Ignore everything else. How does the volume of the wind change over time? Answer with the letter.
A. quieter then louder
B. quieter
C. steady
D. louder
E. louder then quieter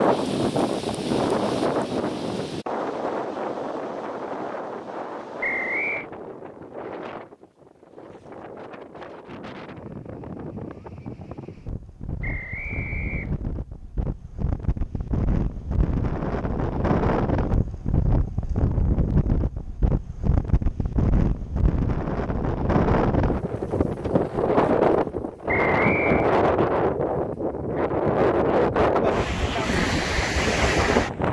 A.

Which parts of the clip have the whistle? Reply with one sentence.
The whistle can be heard from 5.4 to 6.0 s, from 12.2 to 13.4 s and from 25.4 to 26.3 s.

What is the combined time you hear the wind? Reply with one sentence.
You can hear the wind for 31 seconds altogether.